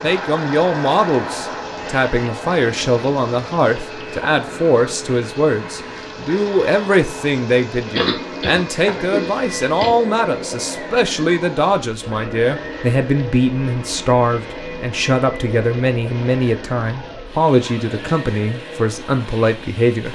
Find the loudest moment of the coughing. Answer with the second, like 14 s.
8 s.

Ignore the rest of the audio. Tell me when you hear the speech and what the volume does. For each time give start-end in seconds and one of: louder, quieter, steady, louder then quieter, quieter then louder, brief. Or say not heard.
0.0-20.0 steady.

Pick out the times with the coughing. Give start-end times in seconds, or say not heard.
8.0-9.9.